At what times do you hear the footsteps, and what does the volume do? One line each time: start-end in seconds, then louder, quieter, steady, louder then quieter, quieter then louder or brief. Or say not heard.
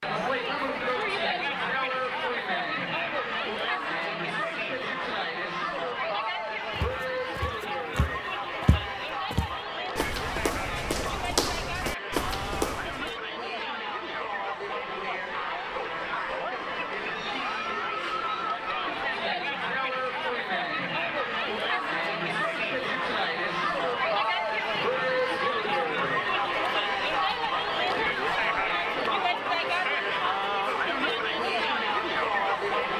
6.7-13.2 louder.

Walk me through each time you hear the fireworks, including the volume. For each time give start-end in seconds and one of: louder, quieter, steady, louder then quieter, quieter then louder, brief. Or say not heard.
not heard.